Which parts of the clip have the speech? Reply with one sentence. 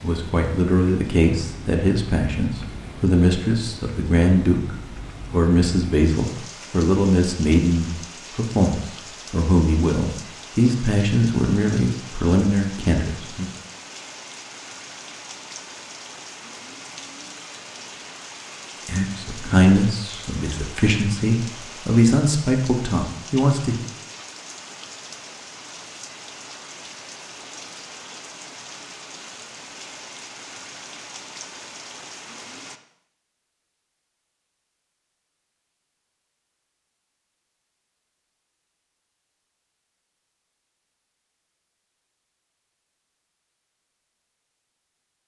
You can hear the speech from 0.0 to 13.5 s and from 18.9 to 23.9 s.